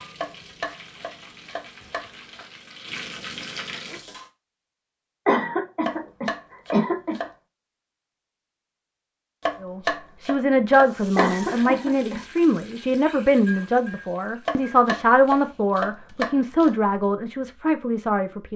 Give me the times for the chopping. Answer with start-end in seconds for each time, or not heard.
0.2-2.5, 5.8-7.3, 9.4-11.7, 14.4-16.8.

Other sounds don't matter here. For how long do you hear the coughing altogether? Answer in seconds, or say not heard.
3 s.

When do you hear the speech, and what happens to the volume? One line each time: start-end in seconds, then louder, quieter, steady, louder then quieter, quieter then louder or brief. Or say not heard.
9.6-18.5 steady.